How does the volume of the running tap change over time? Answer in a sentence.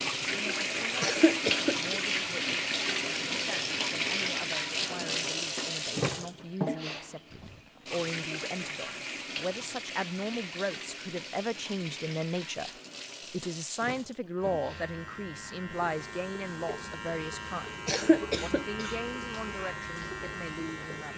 The volume of the running tap goes down.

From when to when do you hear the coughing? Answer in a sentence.
The coughing can be heard from 1.0 to 2.5 s and from 17.9 to 18.9 s.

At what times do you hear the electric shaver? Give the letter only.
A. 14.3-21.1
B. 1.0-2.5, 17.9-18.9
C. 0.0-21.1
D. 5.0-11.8
A.